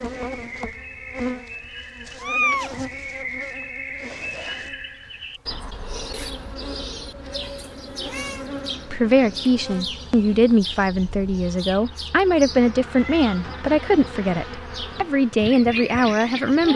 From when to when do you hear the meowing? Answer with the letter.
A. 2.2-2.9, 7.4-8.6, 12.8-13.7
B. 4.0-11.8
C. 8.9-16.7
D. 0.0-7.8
A.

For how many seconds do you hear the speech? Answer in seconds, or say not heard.
8 s.